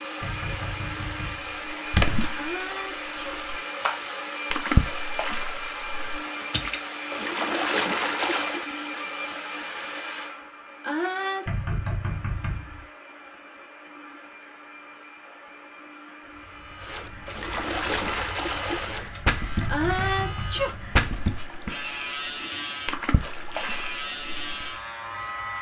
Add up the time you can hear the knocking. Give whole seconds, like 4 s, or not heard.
4 s.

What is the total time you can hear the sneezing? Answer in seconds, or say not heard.
3 s.